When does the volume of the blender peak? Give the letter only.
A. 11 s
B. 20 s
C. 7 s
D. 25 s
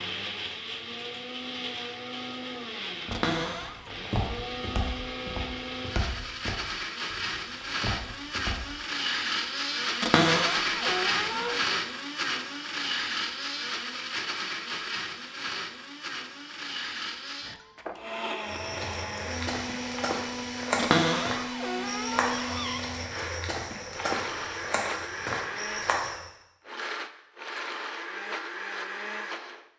A.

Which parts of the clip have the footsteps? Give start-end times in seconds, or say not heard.
3.0-8.6, 18.4-26.3.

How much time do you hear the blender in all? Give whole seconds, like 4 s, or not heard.
30 s.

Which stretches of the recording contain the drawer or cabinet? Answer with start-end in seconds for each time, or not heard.
3.1-4.0, 10.0-11.6, 20.8-22.8.